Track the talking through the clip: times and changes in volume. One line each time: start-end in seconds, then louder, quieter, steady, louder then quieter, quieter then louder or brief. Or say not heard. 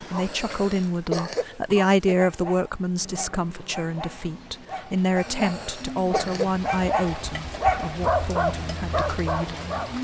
0.0-9.6 quieter.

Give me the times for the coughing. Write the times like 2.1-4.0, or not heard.
0.1-2.1, 5.2-6.6.